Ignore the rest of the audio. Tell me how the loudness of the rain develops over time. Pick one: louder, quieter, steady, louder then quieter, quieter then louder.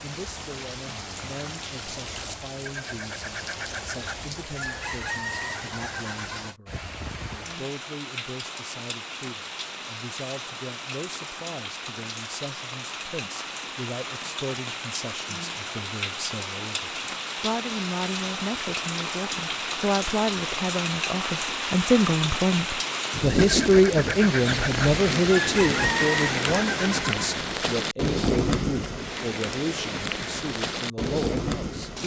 louder.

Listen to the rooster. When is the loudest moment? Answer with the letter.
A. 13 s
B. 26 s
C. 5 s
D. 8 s
B.